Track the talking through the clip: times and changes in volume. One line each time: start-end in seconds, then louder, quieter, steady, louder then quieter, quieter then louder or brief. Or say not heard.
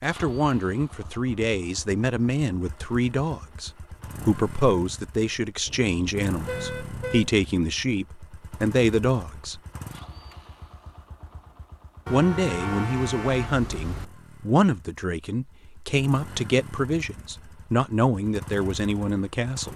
0.0-9.6 steady
12.1-19.7 steady.